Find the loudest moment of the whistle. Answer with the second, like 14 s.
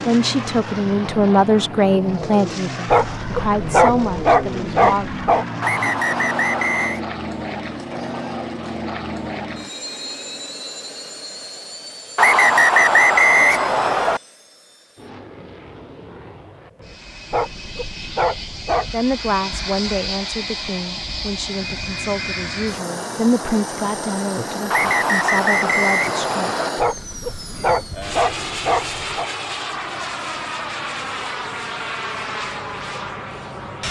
13 s.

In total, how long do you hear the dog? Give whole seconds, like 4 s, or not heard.
7 s.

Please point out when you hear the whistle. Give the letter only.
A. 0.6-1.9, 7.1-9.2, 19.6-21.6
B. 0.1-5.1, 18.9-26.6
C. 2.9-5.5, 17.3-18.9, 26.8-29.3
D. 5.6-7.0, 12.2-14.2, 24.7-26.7
D.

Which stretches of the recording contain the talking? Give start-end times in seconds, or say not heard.
0.1-5.1, 18.9-26.6.